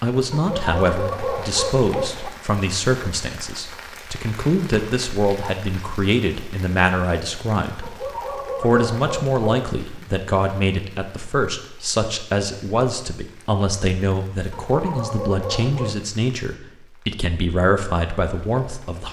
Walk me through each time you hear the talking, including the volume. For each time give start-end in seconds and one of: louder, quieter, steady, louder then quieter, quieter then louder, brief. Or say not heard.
0.0-7.9 steady
8.6-19.0 steady.